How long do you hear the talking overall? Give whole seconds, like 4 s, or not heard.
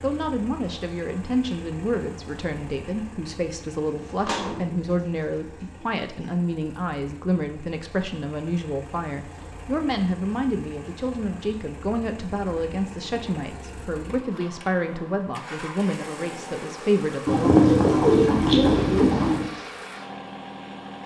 18 s.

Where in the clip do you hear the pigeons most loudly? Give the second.
18 s.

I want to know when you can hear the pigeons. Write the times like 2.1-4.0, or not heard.
3.9-6.0, 17.2-19.5.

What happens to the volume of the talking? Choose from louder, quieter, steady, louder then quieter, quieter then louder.
steady.